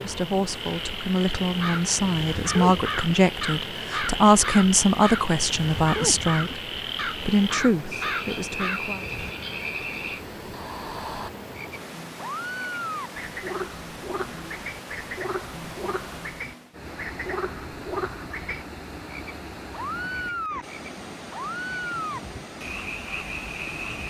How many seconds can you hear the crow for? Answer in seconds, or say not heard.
8 s.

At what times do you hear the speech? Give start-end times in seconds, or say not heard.
0.0-9.1.